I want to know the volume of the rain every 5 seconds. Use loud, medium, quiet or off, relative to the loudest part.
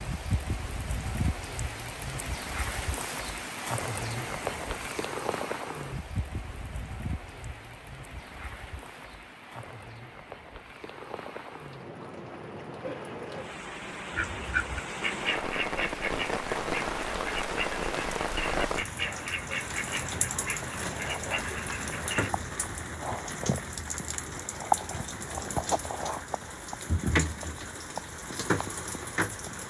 loud, medium, medium, loud, loud, loud.